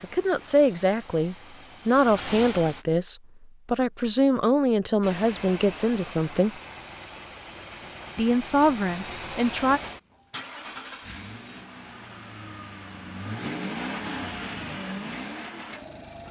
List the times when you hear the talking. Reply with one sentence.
You can hear the talking from 0.0 to 6.5 s and from 8.2 to 9.8 s.